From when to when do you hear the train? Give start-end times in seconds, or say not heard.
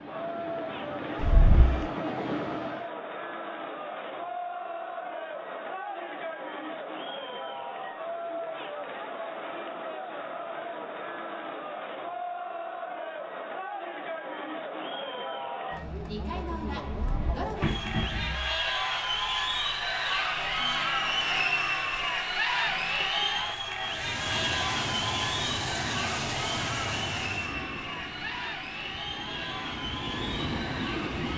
0.0-2.9, 23.8-31.3.